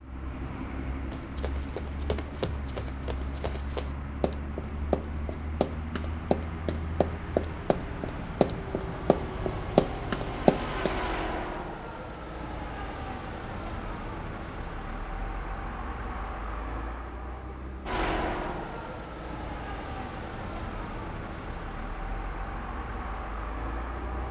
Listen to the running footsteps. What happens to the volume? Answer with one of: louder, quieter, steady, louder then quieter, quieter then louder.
louder.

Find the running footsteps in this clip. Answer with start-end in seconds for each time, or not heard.
1.1-10.9.